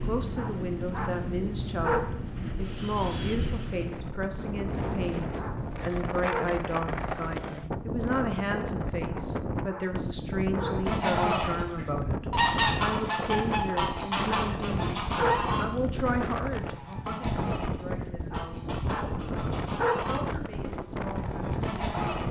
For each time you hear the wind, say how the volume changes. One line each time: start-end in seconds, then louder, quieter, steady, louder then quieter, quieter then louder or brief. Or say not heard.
0.0-22.2 steady.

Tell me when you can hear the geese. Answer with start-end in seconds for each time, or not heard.
10.7-22.2.